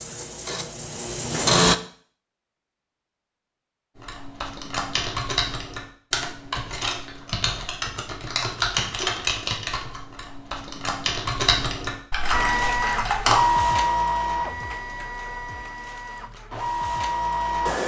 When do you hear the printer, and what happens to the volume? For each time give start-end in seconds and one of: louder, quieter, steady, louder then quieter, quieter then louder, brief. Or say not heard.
0.0-1.8 brief
12.3-17.8 quieter then louder.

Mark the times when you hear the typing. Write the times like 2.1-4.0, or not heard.
4.0-13.4.